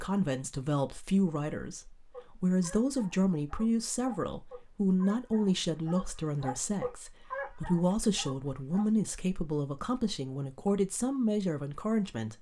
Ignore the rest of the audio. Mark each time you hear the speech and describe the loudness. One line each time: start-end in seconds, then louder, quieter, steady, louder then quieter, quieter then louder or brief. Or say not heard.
0.0-12.3 steady.